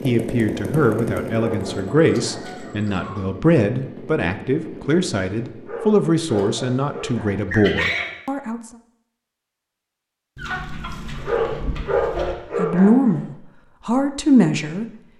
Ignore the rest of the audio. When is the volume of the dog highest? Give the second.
12 s.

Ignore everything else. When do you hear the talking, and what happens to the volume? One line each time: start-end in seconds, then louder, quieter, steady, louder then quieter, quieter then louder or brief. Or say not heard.
0.0-8.6 steady
12.6-14.8 brief.